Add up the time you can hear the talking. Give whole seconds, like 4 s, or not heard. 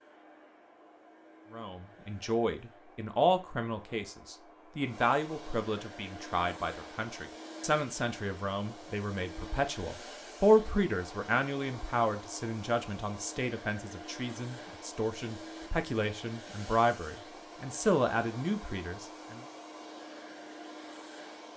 18 s.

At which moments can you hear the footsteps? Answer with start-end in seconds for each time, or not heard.
not heard.